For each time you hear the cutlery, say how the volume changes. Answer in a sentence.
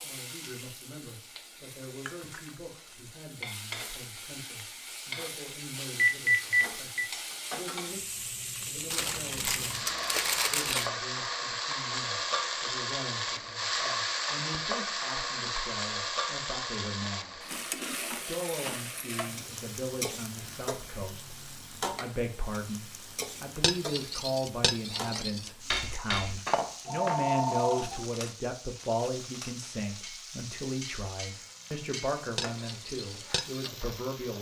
You can hear the cutlery from 23.6 to 33.7 s, getting quieter then louder.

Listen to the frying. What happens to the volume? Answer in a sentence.
The volume of the frying goes up, then down.